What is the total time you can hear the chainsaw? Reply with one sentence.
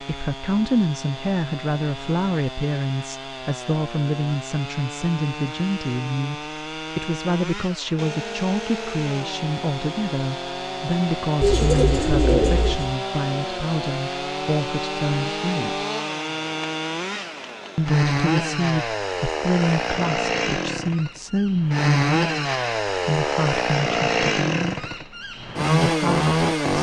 You can hear the chainsaw for 27 seconds altogether.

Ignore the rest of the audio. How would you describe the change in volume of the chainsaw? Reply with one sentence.
The loudness of the chainsaw goes up.